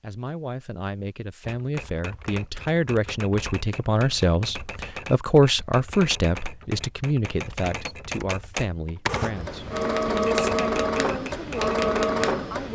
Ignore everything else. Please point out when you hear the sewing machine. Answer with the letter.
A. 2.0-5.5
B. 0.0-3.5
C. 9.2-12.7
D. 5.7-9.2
C.